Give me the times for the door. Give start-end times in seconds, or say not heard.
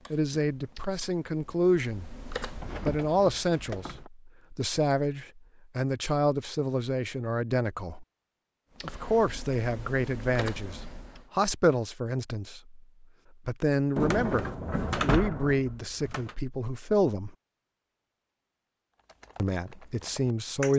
2.5-4.1, 10.3-11.2, 13.9-16.4.